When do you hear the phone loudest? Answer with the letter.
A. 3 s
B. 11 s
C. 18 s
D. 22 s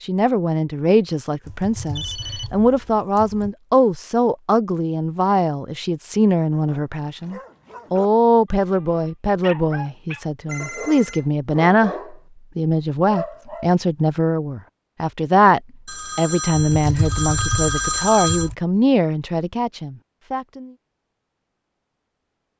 C.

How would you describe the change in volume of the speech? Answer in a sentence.
The volume of the speech stays about the same.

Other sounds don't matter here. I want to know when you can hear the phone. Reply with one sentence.
The phone can be heard from 1.9 to 2.5 s, from 10.4 to 11.3 s and from 15.8 to 18.5 s.